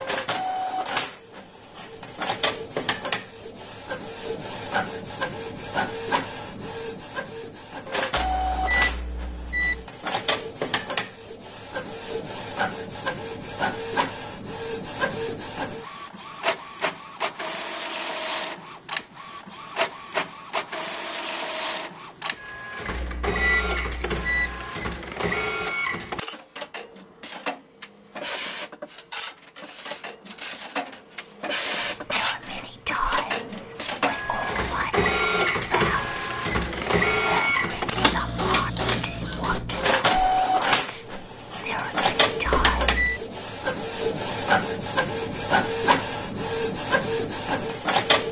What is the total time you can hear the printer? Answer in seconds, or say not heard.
48 s.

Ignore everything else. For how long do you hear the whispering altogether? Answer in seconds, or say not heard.
11 s.